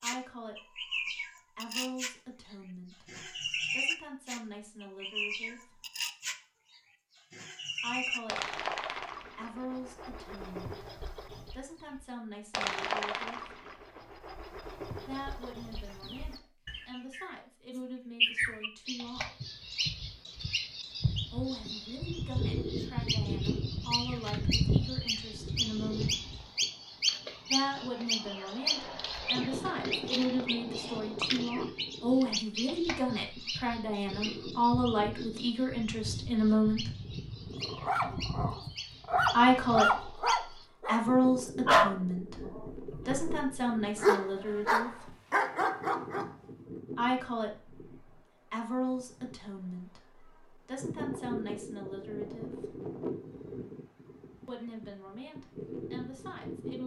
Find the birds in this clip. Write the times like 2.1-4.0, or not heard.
0.0-40.6.